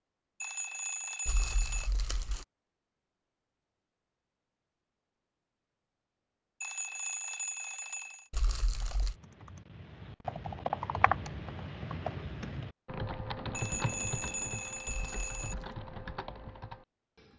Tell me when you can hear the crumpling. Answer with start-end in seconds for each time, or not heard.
1.2-2.5, 8.3-9.2, 14.8-15.7.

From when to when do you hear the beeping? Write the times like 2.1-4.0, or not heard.
0.4-1.9, 6.6-8.3, 13.5-15.6.